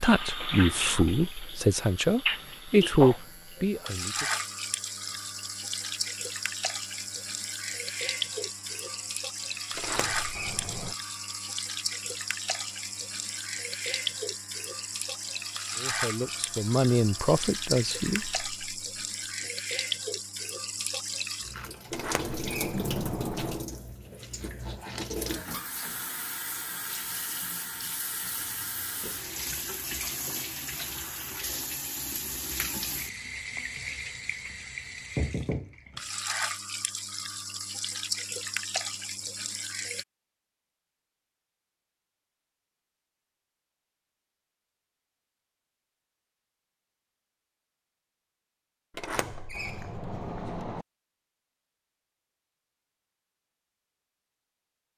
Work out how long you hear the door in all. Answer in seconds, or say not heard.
5 s.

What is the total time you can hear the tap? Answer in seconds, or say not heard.
40 s.